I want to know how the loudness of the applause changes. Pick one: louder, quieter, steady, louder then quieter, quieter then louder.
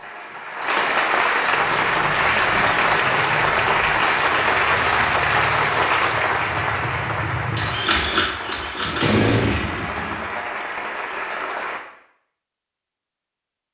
quieter.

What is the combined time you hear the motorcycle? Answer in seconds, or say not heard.
9 s.